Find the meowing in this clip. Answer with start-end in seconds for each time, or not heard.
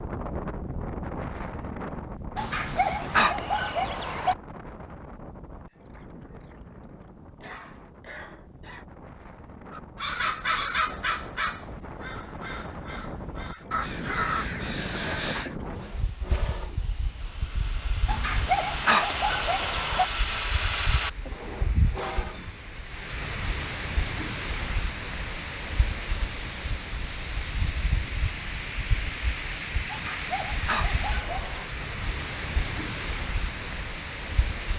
not heard.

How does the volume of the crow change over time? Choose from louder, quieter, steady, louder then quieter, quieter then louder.
quieter then louder.